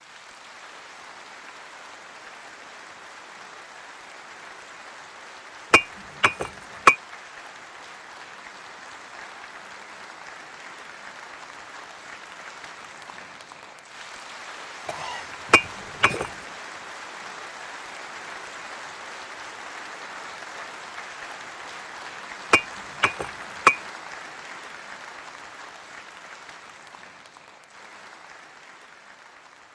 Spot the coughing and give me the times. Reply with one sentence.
You can hear the coughing from 14.8 to 16.2 s.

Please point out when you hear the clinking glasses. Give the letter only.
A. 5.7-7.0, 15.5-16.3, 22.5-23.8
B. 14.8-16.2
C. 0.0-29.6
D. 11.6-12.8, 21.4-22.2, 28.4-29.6
A.